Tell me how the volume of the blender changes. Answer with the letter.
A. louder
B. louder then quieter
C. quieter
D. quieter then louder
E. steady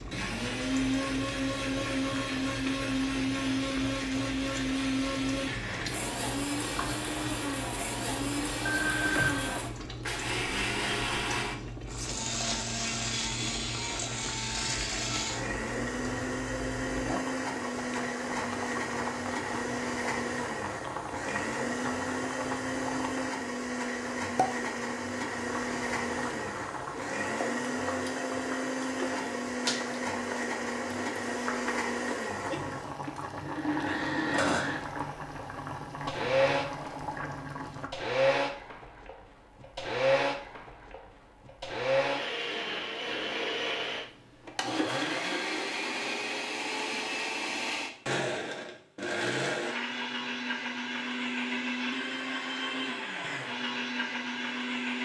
E.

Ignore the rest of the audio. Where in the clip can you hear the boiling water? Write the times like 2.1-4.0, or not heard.
0.0-37.9.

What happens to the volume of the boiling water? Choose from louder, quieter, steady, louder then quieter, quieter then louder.
steady.